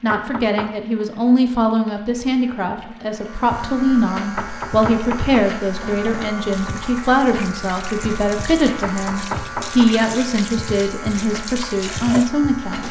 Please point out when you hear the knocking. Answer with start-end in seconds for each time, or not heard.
0.1-0.8, 4.3-6.3, 8.8-9.9.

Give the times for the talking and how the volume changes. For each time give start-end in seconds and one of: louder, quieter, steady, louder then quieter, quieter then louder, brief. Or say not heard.
0.0-12.8 steady.